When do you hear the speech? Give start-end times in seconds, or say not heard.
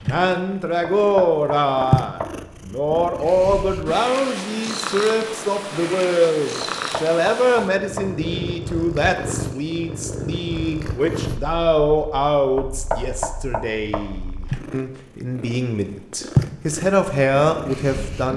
0.0-18.3.